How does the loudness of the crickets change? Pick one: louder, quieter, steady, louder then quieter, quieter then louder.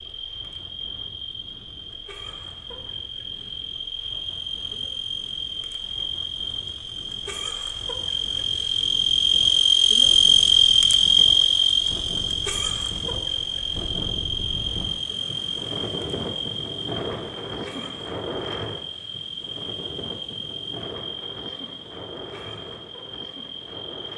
louder then quieter.